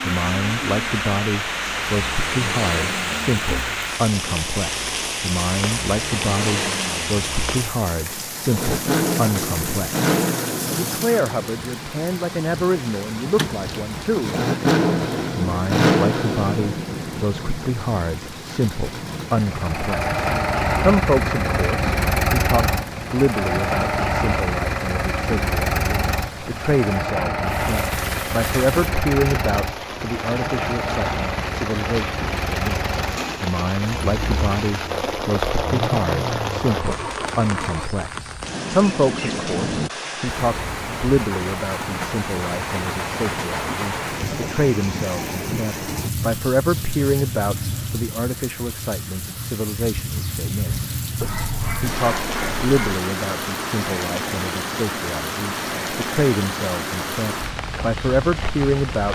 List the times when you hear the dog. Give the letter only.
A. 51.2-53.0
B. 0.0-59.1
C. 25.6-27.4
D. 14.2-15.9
A.